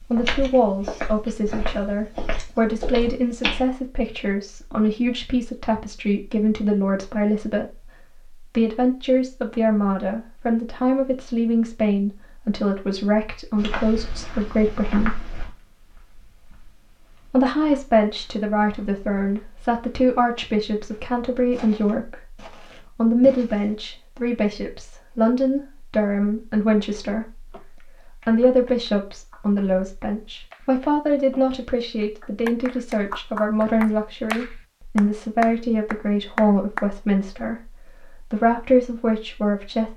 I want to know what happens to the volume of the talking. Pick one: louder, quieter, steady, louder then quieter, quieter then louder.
steady.